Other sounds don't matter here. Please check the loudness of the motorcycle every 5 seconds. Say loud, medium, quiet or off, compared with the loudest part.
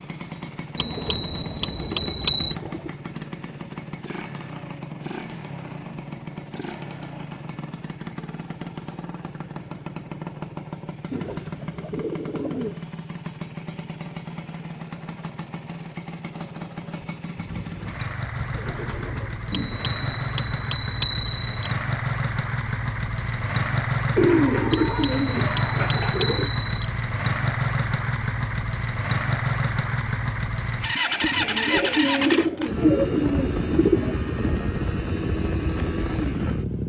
medium, medium, medium, medium, loud, loud, loud, loud.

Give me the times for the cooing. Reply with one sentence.
You can hear the cooing from 0.9 to 2.9 s, from 11.1 to 12.8 s, from 17.4 to 19.9 s, from 24.1 to 26.5 s and from 31.2 to 34.1 s.